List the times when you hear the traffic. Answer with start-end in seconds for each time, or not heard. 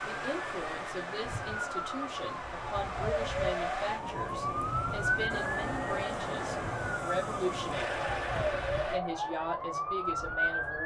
0.0-9.0.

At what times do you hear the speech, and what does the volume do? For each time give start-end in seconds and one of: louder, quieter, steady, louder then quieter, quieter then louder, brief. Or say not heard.
0.0-8.1 louder
8.9-10.8 brief.